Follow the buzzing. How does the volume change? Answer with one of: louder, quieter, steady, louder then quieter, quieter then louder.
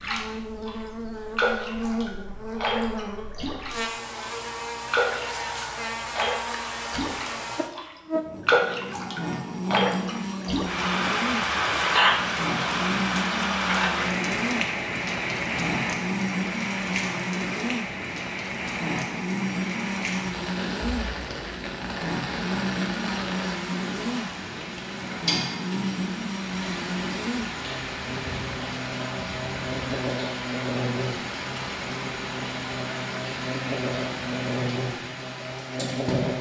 steady.